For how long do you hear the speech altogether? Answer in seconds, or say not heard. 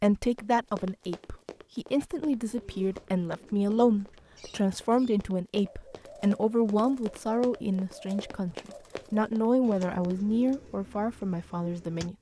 12 s.